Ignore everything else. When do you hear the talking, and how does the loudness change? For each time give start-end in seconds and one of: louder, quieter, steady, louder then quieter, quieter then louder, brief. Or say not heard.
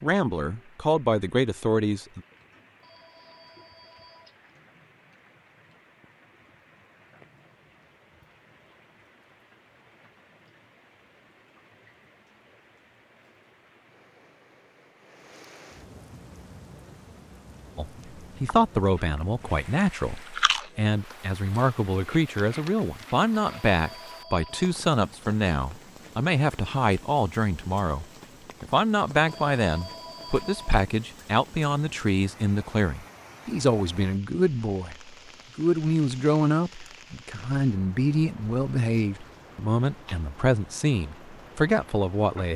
0.0-2.2 brief
17.8-42.5 steady.